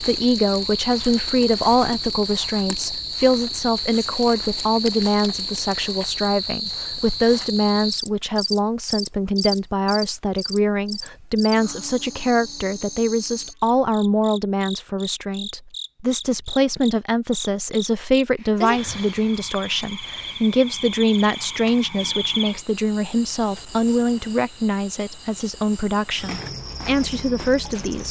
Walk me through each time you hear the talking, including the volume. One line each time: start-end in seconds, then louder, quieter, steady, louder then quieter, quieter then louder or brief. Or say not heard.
0.0-28.0 steady.